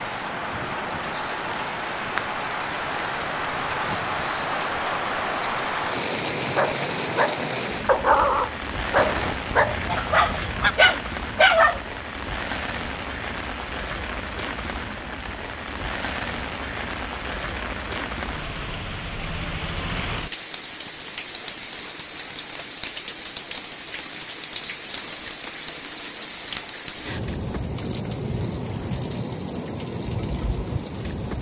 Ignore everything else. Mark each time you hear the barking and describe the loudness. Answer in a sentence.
The barking can be heard from 6.5 to 11.8 s, getting louder.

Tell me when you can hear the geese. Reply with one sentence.
The geese can be heard from 8.9 to 10.8 s.